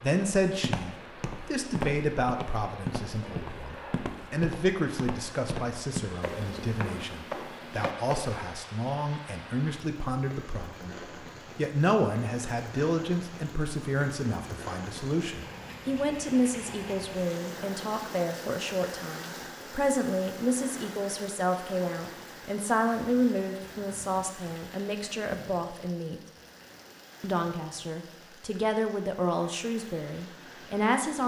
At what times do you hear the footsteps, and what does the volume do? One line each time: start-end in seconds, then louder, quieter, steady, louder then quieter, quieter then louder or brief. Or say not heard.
0.5-8.4 steady.